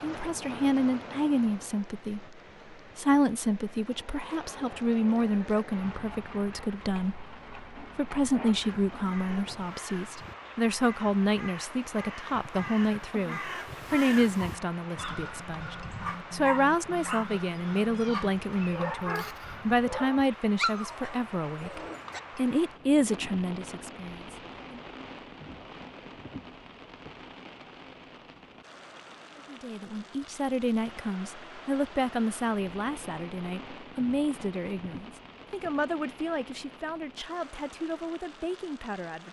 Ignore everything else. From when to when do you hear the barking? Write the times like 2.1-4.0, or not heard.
14.3-22.2.